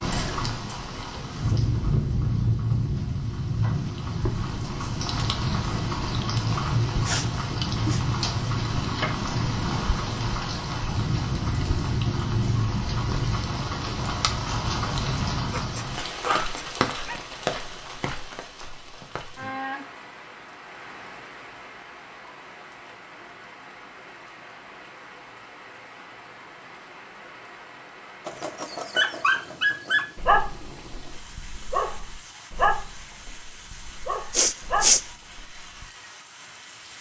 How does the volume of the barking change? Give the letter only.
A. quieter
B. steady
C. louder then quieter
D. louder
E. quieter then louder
E.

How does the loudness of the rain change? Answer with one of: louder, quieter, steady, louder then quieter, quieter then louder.
quieter.